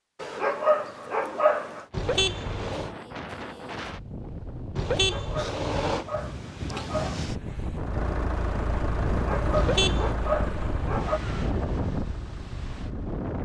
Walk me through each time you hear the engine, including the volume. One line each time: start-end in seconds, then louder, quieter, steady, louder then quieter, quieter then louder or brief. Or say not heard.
7.8-13.2 quieter.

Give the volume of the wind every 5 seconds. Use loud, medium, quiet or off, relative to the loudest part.
medium, loud, loud.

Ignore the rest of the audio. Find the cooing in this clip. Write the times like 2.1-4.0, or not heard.
not heard.